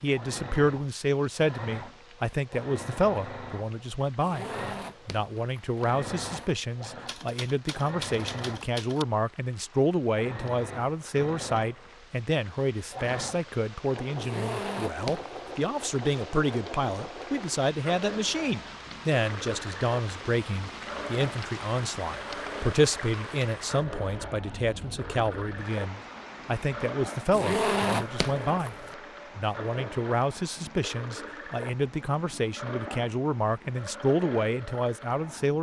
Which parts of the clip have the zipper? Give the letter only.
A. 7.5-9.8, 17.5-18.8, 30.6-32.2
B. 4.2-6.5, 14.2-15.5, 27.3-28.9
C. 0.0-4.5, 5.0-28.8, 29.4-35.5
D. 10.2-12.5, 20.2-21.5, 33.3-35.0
B.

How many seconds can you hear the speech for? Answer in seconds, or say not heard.
34 s.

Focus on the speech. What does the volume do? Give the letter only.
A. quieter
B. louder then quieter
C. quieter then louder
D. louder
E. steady
E.